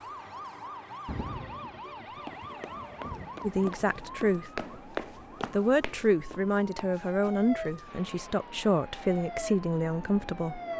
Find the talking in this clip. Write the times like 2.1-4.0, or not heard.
3.4-4.6, 5.5-10.6.